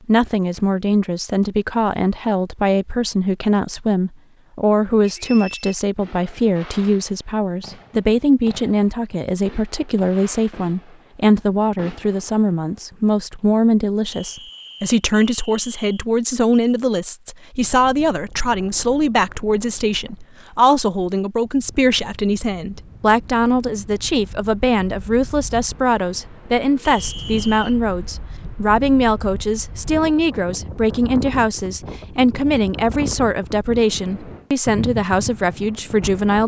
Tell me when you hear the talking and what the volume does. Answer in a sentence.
The talking can be heard from 0.1 to 36.4 s, at a steady volume.